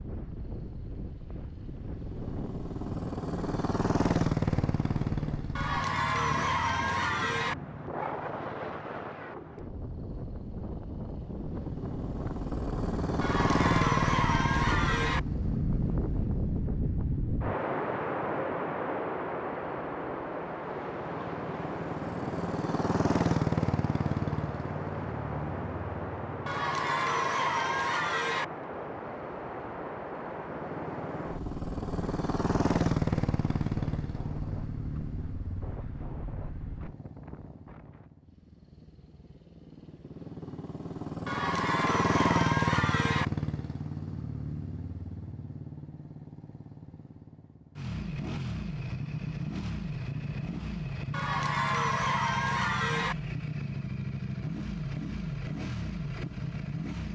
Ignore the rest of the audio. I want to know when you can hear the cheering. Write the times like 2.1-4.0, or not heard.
5.5-7.5, 13.2-15.2, 26.4-28.4, 41.2-43.2, 51.1-53.1.